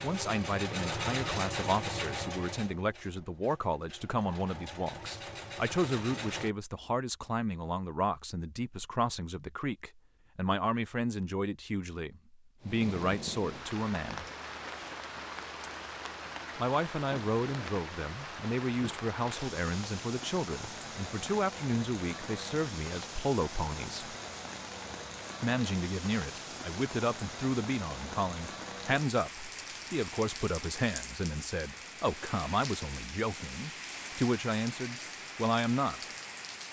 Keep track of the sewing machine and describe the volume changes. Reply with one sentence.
The loudness of the sewing machine goes down, then up.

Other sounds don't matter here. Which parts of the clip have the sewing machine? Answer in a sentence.
You can hear the sewing machine from 0.0 to 6.5 s.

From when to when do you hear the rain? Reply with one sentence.
You can hear the rain from 12.6 to 36.6 s.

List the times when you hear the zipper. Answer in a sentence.
You can't hear the zipper here.